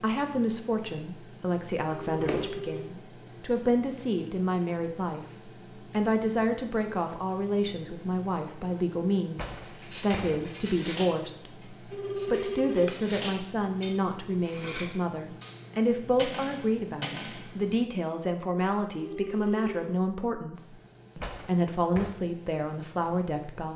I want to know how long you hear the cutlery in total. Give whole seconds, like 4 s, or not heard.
8 s.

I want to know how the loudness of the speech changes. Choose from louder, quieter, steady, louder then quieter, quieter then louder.
steady.